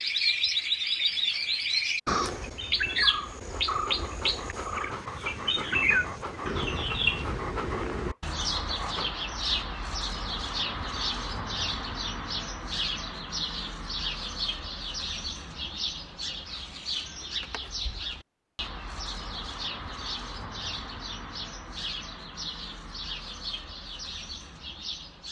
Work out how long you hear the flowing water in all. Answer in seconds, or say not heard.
not heard.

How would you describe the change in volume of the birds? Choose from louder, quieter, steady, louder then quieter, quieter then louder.
quieter.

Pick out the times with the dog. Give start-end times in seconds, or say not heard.
3.5-9.2.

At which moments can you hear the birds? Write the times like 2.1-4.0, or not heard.
0.0-25.2.